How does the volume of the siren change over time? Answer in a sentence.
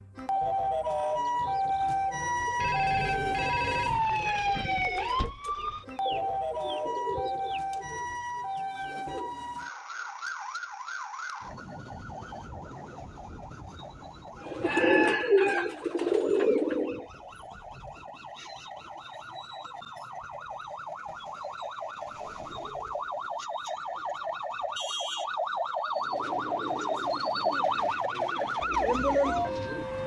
The loudness of the siren goes down, then up.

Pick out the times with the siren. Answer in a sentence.
You can hear the siren from 0.0 to 30.0 s.